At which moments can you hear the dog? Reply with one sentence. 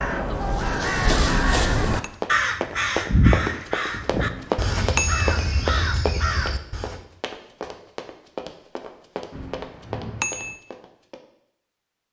You can't hear the dog here.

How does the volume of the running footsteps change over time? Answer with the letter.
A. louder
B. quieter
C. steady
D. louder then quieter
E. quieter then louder
B.